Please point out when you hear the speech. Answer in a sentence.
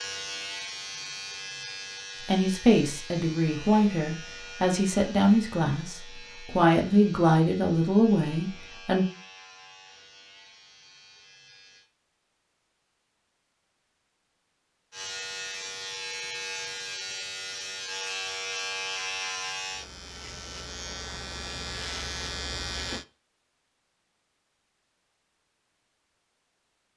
The speech can be heard from 2.2 to 9.1 s.